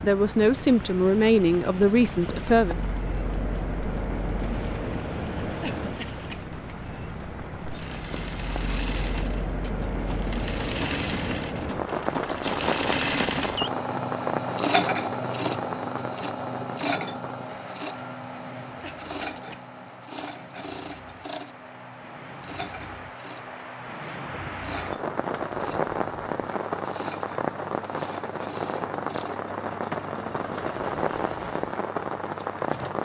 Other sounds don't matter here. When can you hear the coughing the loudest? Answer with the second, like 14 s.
6 s.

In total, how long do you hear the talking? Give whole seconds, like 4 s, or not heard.
3 s.